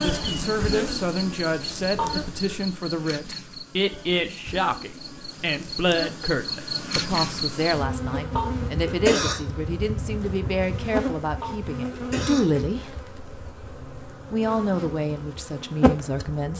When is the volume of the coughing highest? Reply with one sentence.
The volume of the coughing peaks at 9 seconds.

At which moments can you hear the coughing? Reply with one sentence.
The coughing can be heard from 1.9 to 2.5 s, from 8.3 to 9.3 s and from 11.4 to 12.4 s.